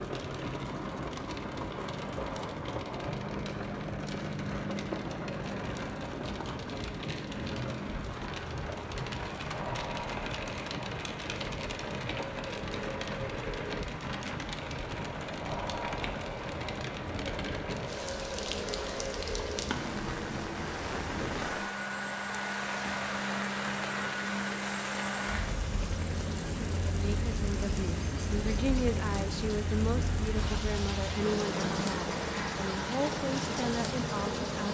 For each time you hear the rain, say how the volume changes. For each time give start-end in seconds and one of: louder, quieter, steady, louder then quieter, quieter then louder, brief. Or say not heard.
0.0-34.6 steady.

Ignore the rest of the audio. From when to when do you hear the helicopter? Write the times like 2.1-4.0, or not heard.
0.0-34.6.